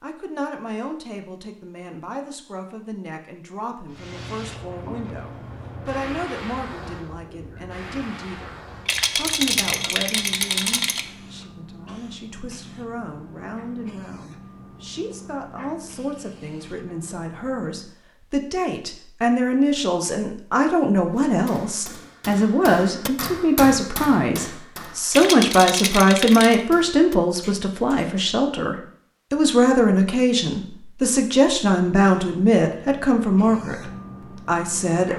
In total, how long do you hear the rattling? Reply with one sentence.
You can hear the rattling for 4 seconds altogether.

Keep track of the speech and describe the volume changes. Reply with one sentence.
The volume of the speech goes up.